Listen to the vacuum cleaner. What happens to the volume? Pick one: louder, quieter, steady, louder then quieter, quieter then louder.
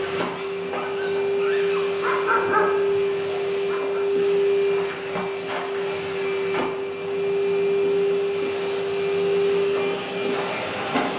steady.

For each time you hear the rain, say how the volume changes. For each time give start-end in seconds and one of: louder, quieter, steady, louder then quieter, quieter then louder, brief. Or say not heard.
not heard.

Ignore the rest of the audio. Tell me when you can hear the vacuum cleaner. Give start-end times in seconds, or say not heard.
0.0-11.1.